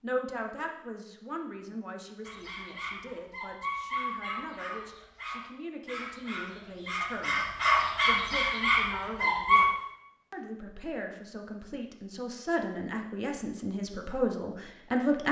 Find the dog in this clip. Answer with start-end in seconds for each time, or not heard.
2.2-9.7.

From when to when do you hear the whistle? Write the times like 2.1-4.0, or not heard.
not heard.